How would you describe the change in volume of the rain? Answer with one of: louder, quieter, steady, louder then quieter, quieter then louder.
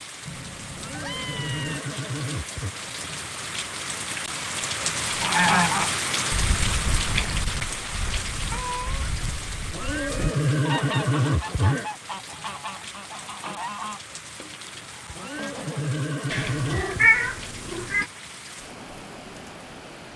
louder then quieter.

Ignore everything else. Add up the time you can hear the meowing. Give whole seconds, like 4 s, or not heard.
5 s.